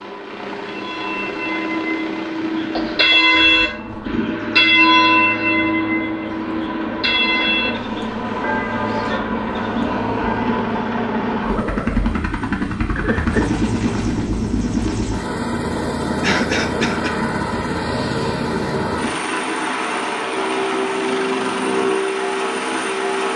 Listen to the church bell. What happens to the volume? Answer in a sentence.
The volume of the church bell goes up, then down.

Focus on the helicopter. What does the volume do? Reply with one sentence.
The volume of the helicopter goes up.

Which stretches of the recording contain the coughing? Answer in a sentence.
You can hear the coughing from 2.8 to 4.2 s, from 12.9 to 13.6 s and from 16.2 to 17.1 s.